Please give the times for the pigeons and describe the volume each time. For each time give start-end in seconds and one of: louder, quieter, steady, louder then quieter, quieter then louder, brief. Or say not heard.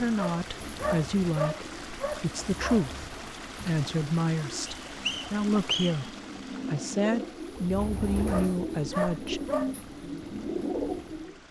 0.0-11.4 louder.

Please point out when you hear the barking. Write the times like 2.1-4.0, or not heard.
0.1-2.9, 8.2-9.8.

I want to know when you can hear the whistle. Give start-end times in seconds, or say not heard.
4.7-6.1.